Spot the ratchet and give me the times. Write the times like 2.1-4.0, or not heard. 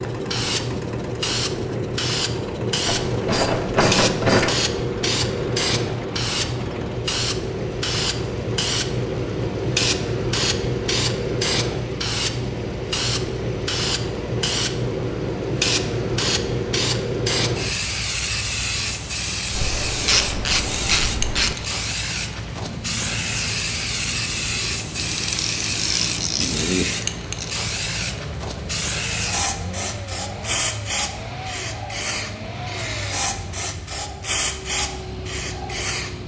2.9-4.6, 19.5-21.6, 25.1-27.6.